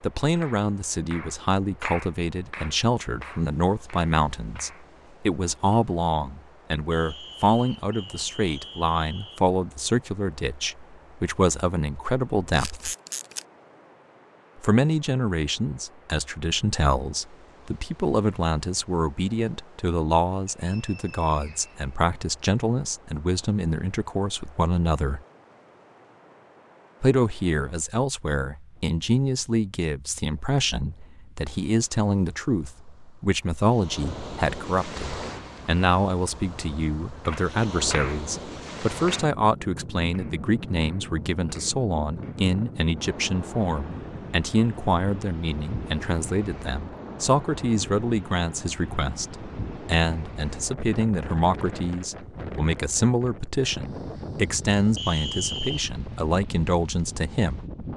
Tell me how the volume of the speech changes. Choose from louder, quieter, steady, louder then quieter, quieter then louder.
steady.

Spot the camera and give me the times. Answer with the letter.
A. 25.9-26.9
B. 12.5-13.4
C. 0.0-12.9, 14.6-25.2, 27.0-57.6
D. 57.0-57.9
B.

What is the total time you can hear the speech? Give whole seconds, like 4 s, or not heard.
54 s.